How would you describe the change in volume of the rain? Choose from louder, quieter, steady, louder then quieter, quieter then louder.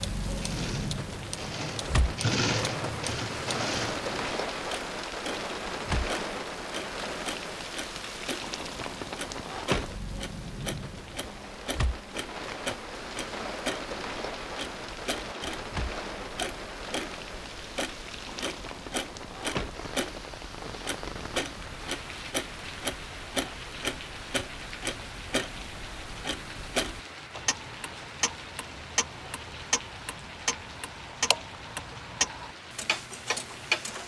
quieter.